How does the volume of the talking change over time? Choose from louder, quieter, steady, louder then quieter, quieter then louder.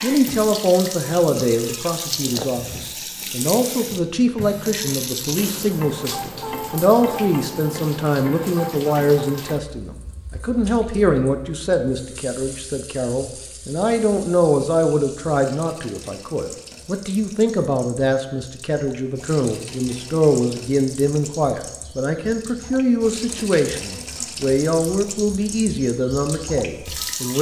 steady.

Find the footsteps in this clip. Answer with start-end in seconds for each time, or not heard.
not heard.